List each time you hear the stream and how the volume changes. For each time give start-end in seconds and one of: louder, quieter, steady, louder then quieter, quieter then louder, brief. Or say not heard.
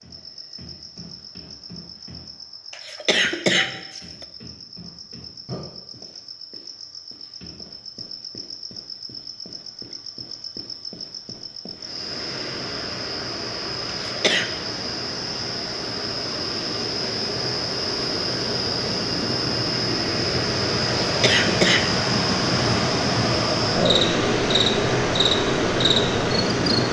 11.7-26.8 louder.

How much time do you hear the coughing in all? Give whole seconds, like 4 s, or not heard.
3 s.